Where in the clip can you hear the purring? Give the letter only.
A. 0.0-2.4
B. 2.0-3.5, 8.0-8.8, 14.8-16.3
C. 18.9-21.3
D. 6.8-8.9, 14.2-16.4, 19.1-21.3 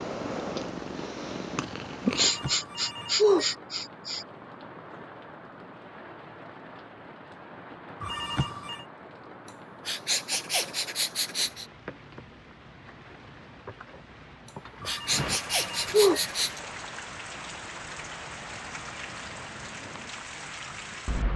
A.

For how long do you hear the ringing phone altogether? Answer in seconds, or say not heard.
4 s.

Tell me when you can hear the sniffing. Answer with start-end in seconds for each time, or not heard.
2.1-4.2, 9.4-11.7, 14.4-16.6.